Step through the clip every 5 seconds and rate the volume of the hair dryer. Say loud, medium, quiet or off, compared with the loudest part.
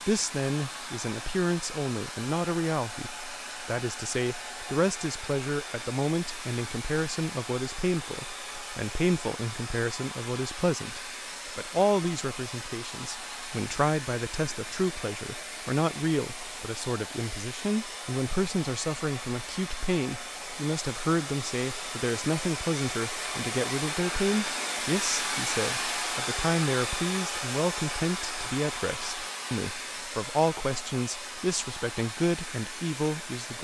medium, medium, medium, medium, loud, loud, medium.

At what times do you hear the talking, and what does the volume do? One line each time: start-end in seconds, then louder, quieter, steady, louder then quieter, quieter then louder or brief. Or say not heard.
0.1-33.5 steady.